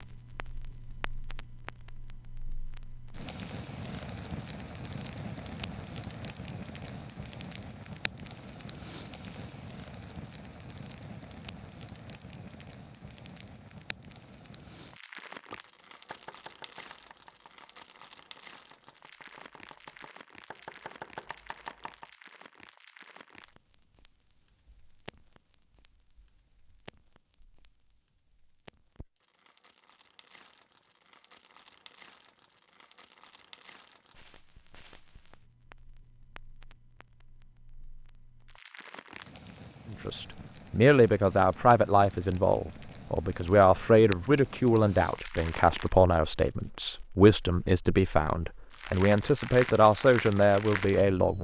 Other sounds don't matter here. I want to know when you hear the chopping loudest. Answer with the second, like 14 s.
21 s.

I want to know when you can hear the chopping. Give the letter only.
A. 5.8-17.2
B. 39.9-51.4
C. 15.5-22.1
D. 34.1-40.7
C.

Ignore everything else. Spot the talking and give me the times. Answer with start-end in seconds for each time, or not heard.
39.9-51.4.